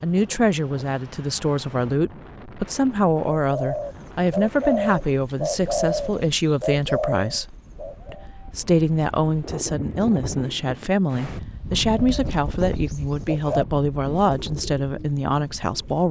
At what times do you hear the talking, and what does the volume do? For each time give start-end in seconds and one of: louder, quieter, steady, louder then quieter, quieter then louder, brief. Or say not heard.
0.0-16.0 steady.